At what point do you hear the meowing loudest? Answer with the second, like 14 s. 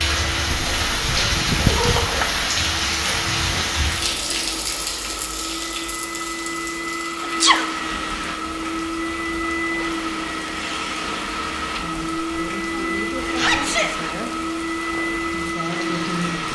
2 s.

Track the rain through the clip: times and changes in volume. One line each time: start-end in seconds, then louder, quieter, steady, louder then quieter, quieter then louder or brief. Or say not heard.
0.0-16.5 quieter.